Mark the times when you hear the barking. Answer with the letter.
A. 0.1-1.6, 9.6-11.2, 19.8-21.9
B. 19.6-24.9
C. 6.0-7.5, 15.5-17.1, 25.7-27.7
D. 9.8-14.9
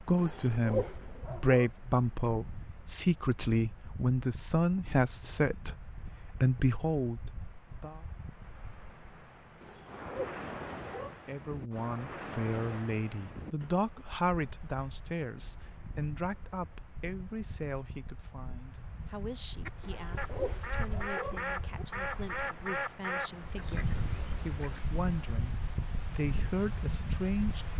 A.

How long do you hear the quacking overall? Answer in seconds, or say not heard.
5 s.